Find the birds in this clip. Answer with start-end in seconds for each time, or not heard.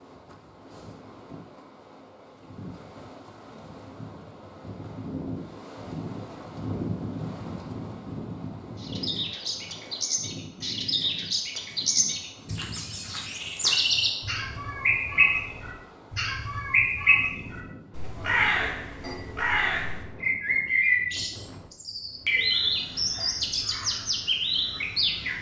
8.8-25.3.